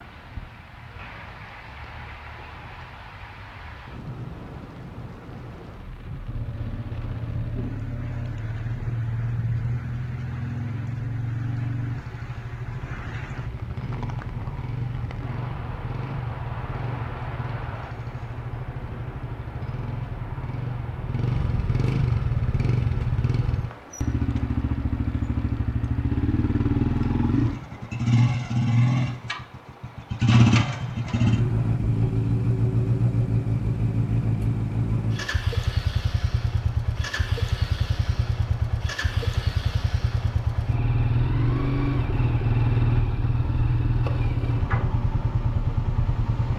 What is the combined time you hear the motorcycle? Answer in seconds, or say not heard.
40 s.